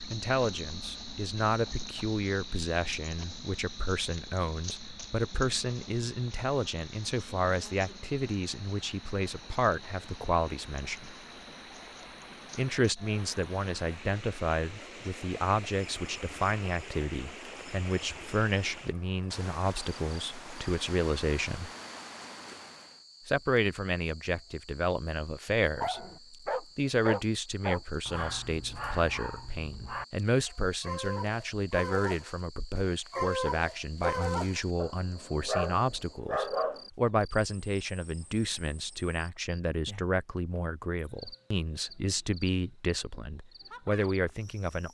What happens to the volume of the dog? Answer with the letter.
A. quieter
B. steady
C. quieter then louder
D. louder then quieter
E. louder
C.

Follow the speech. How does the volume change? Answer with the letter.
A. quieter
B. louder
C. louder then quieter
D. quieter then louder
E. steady
E.